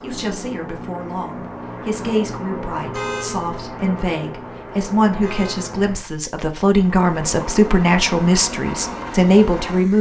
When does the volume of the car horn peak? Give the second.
3 s.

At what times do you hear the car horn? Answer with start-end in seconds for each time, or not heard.
2.9-3.5, 5.2-5.7.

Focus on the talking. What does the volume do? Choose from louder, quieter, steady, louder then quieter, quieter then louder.
louder.